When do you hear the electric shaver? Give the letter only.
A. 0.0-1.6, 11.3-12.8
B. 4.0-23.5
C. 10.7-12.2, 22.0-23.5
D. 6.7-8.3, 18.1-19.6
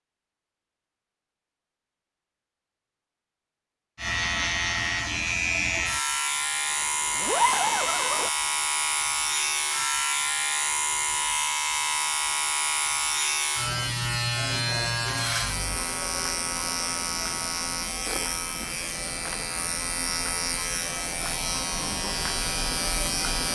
B.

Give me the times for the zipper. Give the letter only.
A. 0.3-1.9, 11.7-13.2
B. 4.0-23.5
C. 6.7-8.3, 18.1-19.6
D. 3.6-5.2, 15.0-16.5
C.